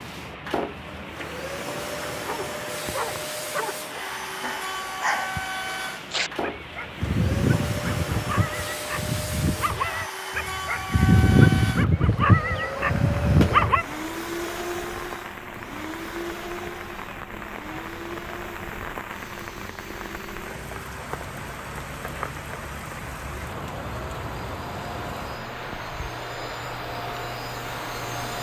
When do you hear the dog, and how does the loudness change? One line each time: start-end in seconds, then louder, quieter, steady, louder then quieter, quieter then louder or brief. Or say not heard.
2.2-13.8 louder.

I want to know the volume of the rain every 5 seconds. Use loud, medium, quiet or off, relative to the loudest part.
medium, medium, medium, loud, loud, loud.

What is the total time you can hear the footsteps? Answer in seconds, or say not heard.
not heard.